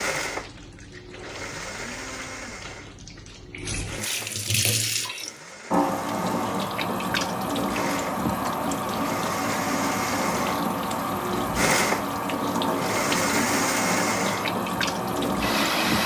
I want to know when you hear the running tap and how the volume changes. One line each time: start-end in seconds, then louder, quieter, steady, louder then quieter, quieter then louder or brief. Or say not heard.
0.0-16.0 louder.